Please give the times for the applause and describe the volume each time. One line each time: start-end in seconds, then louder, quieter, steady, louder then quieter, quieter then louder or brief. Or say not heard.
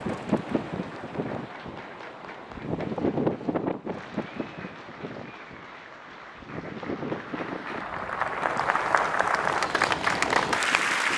0.1-11.1 louder.